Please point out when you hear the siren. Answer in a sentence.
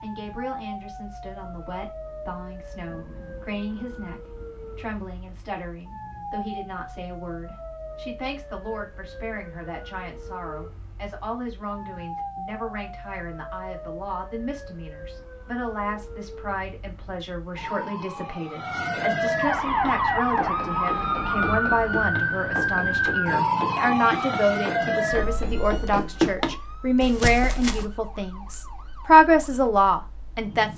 The siren can be heard from 0.0 to 30.7 s.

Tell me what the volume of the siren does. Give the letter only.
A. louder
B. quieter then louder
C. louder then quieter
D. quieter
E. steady
C.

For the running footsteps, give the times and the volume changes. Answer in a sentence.
The running footsteps can be heard from 19.6 to 27.9 s, getting louder.